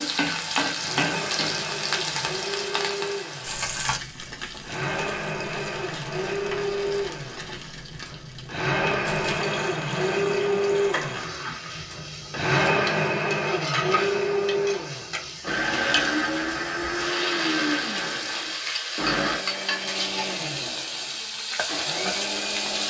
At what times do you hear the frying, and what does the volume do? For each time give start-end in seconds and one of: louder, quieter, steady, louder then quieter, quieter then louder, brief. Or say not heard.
0.0-22.8 quieter then louder.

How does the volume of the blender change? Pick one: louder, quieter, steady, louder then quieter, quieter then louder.
louder then quieter.